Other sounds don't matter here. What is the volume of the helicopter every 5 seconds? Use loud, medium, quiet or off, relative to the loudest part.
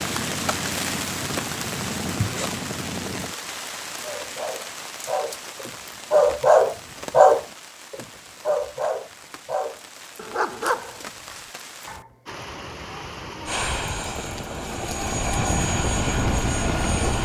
medium, off, medium, loud.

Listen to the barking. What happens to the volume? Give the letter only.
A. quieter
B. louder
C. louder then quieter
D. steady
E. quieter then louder
C.